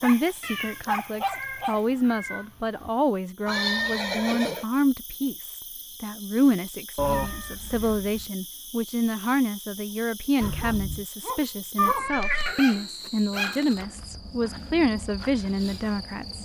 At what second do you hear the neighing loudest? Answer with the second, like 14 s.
4 s.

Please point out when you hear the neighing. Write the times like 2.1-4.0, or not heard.
3.5-4.7, 10.4-11.1.